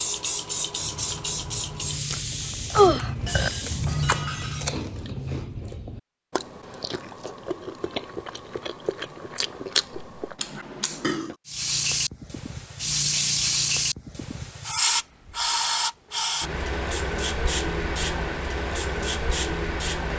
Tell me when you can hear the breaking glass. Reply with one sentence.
The breaking glass can be heard from 3.2 to 4.8 s.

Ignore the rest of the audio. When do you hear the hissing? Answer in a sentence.
You can hear the hissing from 0.0 to 4.2 s and from 11.4 to 20.1 s.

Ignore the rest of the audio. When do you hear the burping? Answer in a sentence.
You can hear the burping from 2.7 to 3.5 s and from 10.4 to 11.3 s.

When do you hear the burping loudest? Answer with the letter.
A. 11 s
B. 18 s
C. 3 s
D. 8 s
C.